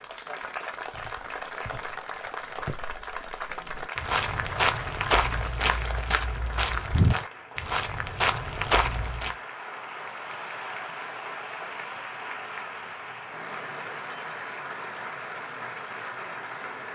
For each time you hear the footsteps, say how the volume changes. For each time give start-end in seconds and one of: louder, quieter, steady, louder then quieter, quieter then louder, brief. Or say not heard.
0.8-9.3 louder.